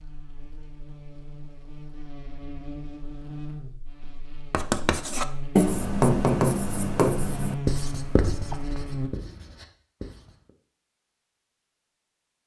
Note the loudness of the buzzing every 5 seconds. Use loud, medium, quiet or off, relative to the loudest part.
medium, loud, off.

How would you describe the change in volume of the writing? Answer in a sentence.
The loudness of the writing goes up, then down.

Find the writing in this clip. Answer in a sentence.
The writing can be heard from 4.0 to 10.5 s.